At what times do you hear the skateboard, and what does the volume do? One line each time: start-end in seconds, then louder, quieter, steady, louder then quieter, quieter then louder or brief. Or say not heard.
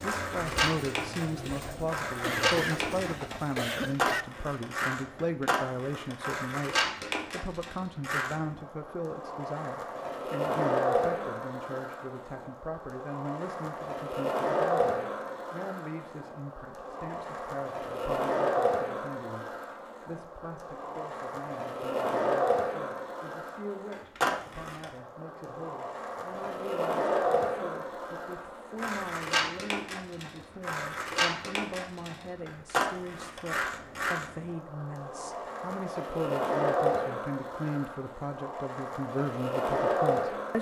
0.0-40.5 steady.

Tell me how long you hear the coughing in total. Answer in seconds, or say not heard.
2 s.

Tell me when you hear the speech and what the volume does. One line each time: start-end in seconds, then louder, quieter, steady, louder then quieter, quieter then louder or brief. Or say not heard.
0.0-40.5 quieter then louder.